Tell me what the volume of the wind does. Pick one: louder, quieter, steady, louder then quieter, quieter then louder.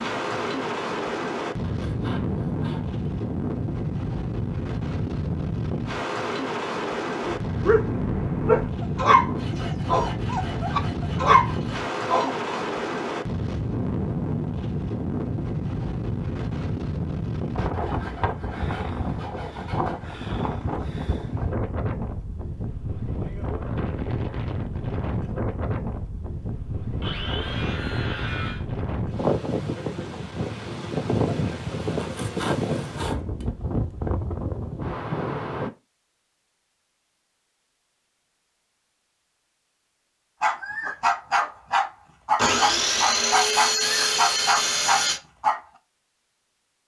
steady.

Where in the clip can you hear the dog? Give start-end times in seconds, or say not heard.
7.2-12.6, 40.4-45.6.